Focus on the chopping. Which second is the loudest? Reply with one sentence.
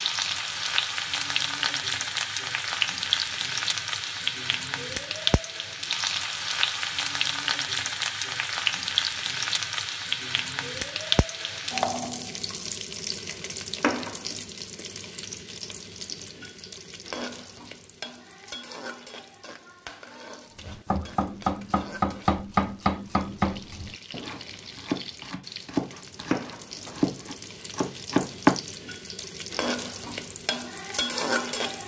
The volume of the chopping peaks at 28 seconds.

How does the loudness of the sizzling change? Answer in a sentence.
The volume of the sizzling goes down, then up.